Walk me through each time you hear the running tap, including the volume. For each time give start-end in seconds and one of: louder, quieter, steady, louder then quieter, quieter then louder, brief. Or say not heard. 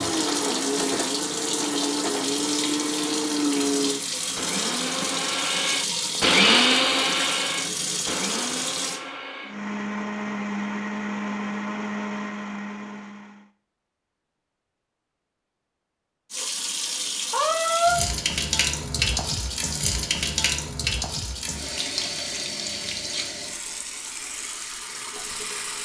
0.0-9.0 steady
16.3-25.8 quieter.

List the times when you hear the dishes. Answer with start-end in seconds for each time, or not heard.
not heard.